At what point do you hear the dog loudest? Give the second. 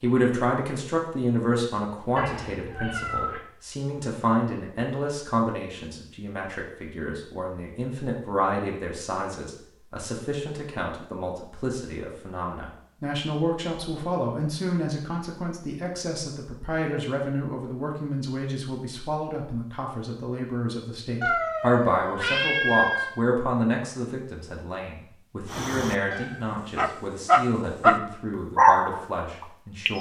29 s.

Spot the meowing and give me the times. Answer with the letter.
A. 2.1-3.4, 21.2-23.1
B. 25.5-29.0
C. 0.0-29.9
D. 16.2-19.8
A.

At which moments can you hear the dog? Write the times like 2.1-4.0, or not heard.
25.5-29.0.